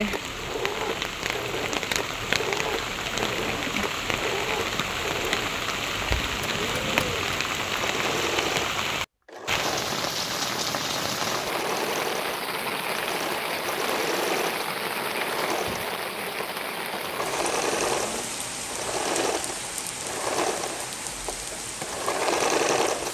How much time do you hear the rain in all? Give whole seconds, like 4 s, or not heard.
23 s.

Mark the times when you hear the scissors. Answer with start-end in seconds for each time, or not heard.
not heard.